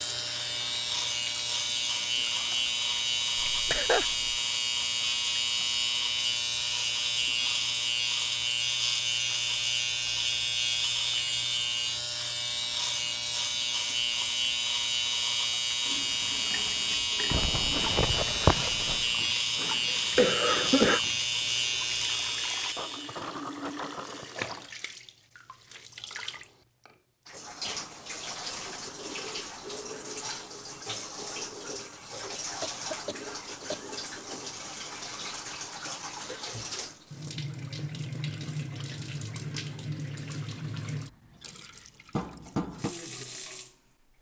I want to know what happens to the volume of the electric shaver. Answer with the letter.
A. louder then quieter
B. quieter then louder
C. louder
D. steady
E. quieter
D.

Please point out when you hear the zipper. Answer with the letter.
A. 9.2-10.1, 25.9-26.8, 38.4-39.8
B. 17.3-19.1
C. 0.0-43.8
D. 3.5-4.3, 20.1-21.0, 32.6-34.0
B.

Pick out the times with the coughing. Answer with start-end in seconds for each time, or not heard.
3.5-4.3, 20.1-21.0, 32.6-34.0.